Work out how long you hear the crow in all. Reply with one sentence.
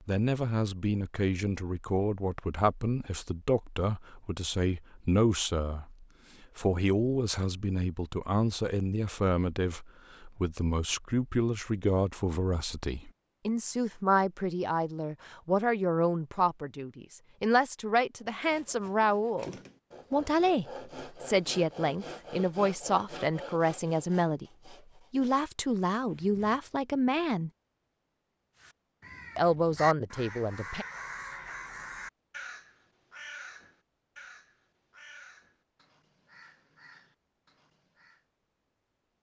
You can hear the crow for 10 seconds altogether.